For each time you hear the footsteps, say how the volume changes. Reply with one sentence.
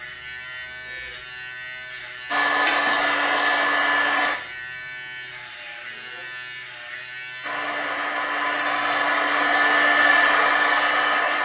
You can't hear the footsteps here.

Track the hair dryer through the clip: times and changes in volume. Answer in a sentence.
The hair dryer can be heard briefly from 2.3 to 4.3 s; and from 7.4 to 11.4 s, getting louder.